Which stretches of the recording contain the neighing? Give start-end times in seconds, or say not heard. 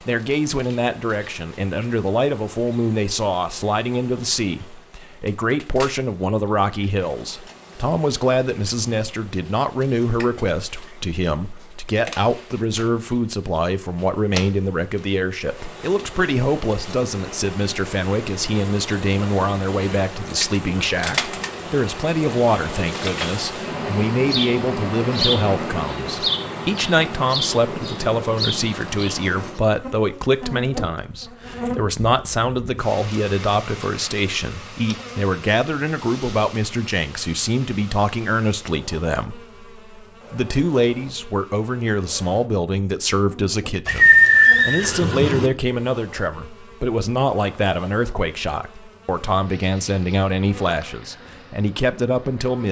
43.9-45.5.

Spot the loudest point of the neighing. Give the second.
44 s.